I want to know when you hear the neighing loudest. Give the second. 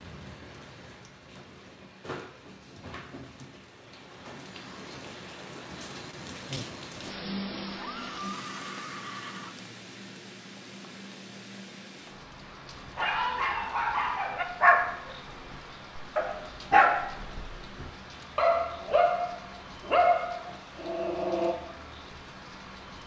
8 s.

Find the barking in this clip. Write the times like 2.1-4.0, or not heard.
12.9-21.6.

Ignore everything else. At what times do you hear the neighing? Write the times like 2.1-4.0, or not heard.
7.7-9.6.